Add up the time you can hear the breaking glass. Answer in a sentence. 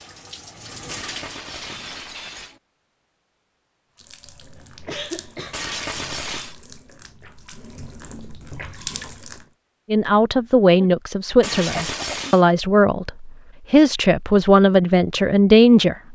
You can hear the breaking glass for 4 seconds altogether.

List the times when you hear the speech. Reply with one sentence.
You can hear the speech from 9.9 to 16.1 s.